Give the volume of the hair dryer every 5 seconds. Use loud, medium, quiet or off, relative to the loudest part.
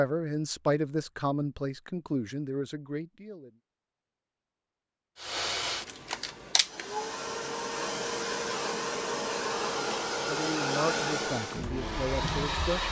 off, loud, loud.